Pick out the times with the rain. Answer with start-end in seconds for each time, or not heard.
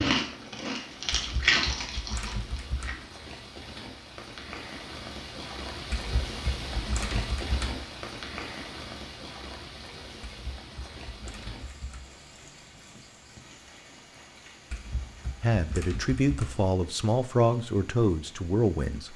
0.1-19.1.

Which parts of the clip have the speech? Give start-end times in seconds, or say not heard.
15.4-19.1.